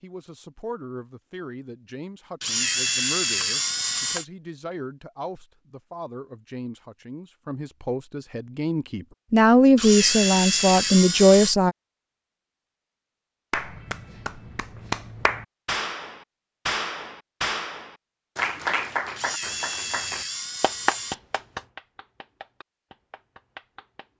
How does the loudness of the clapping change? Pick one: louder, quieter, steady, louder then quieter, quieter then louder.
quieter.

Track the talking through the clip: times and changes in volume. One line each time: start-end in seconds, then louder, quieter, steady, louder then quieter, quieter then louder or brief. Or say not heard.
0.0-11.8 louder.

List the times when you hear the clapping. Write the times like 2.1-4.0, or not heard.
13.5-24.1.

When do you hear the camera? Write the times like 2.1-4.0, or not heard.
2.4-4.2, 9.8-11.6, 19.1-21.1.